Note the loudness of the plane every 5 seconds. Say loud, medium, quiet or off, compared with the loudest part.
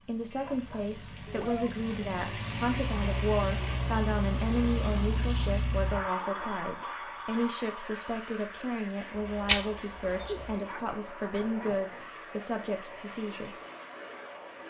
loud, loud, medium.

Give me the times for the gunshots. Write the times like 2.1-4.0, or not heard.
9.3-10.6.